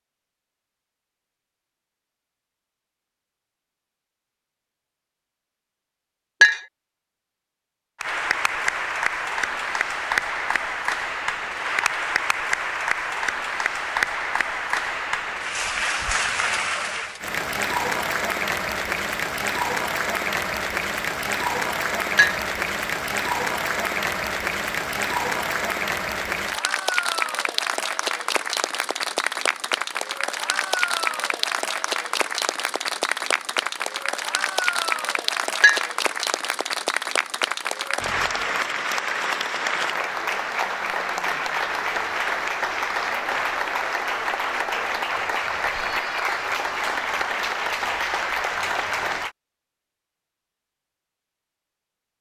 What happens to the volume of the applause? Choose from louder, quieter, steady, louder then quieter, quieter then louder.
steady.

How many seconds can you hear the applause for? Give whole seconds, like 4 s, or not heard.
41 s.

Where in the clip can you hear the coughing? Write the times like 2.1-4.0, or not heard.
not heard.